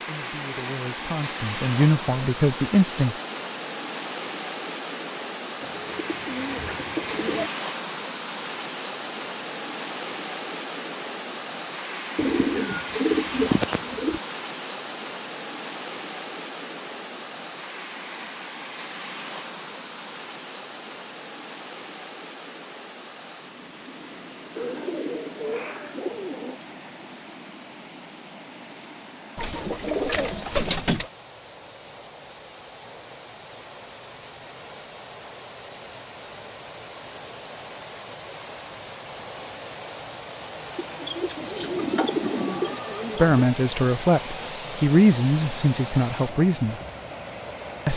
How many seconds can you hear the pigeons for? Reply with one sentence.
The pigeons can be heard for 10 seconds in total.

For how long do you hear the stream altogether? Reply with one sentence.
The stream can be heard for 48 seconds in total.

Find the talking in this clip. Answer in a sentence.
You can hear the talking from 0.1 to 3.1 s and from 43.1 to 46.8 s.